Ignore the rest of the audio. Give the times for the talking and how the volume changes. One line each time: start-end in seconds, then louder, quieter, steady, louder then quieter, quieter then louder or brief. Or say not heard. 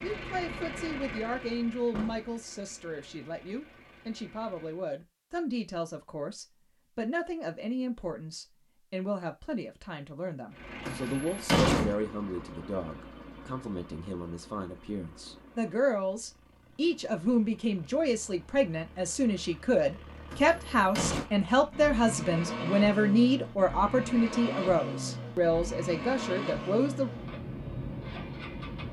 0.0-27.1 louder.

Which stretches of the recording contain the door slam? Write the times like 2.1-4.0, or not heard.
1.9-2.4, 10.8-11.9, 20.3-21.3.